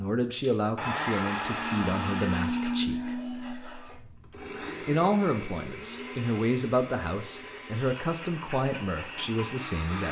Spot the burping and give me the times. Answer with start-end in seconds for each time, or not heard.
not heard.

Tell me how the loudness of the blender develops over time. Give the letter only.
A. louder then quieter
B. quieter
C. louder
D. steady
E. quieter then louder
B.